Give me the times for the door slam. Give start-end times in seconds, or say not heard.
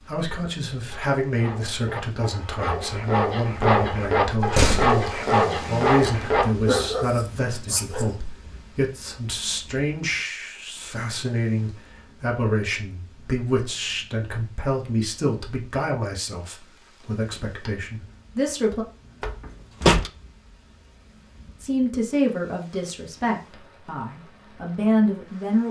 4.3-5.0, 19.2-20.1.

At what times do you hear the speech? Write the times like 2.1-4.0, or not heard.
0.0-18.9, 21.6-25.6.